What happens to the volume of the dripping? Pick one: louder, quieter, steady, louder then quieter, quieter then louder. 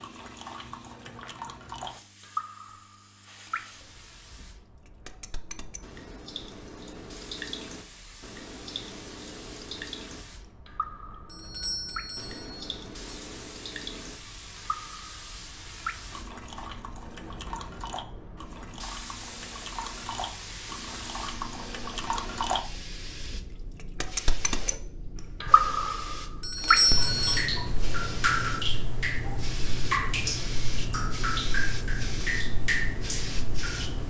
louder.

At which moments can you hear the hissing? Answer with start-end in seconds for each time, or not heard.
0.0-34.0.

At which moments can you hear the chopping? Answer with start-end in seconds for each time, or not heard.
not heard.